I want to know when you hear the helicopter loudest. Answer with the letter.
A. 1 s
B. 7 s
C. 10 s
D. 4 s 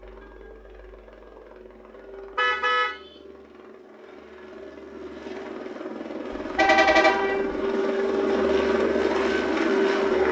C.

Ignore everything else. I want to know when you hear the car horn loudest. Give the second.
7 s.